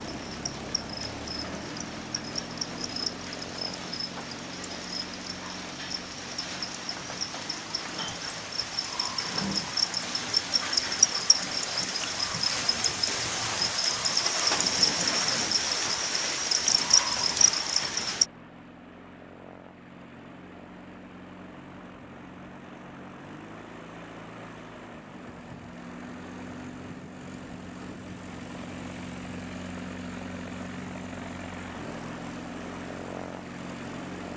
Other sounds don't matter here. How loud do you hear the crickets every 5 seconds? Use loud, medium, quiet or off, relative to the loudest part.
quiet, medium, loud, loud, off, off, off.